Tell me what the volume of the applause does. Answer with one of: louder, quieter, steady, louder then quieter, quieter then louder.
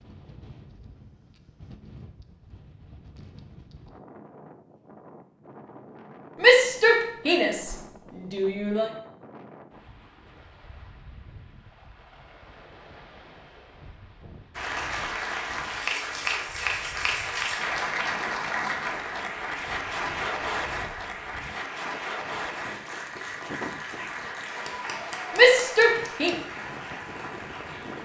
quieter.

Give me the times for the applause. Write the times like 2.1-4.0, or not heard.
14.6-27.9.